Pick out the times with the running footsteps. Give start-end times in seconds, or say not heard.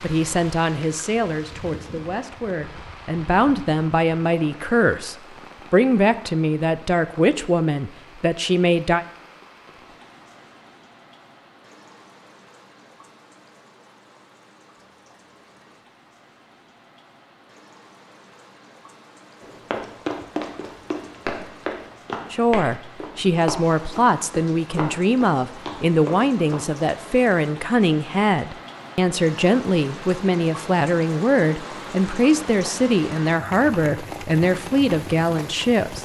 19.4-26.6.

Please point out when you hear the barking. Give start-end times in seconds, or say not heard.
not heard.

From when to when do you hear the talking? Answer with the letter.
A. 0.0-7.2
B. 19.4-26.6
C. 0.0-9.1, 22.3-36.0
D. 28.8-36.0
C.